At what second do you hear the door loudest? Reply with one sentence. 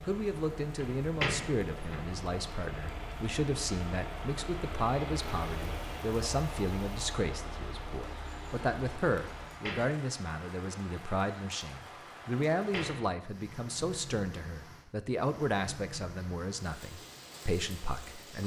The volume of the door peaks at 1 second.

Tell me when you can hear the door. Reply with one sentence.
The door can be heard from 0.8 to 2.0 s, from 9.3 to 9.9 s and from 12.6 to 13.1 s.